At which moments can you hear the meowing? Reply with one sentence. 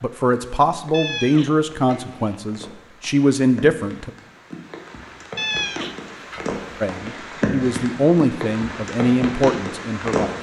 You can hear the meowing from 0.9 to 2.4 s and from 5.3 to 6.8 s.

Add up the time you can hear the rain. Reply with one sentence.
You can hear the rain for 10 seconds altogether.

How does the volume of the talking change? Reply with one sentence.
The loudness of the talking stays about the same.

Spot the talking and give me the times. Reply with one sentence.
You can hear the talking from 0.0 to 4.1 s and from 6.8 to 10.3 s.